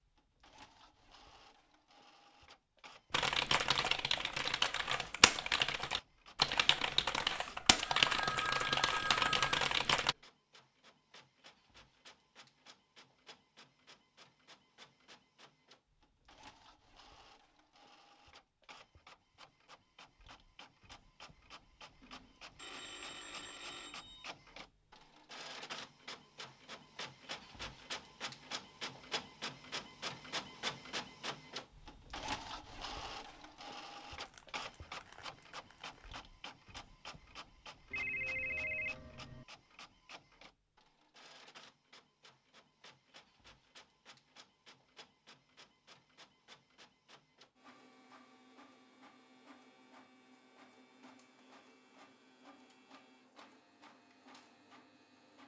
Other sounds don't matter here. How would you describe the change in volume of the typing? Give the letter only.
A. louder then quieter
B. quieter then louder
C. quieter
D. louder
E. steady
E.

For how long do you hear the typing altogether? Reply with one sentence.
The typing can be heard for 7 seconds in total.